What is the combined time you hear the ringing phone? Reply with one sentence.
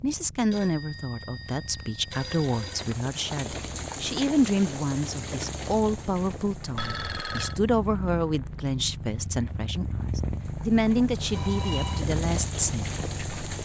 The ringing phone can be heard for 4 seconds in total.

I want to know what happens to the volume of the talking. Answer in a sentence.
The loudness of the talking stays about the same.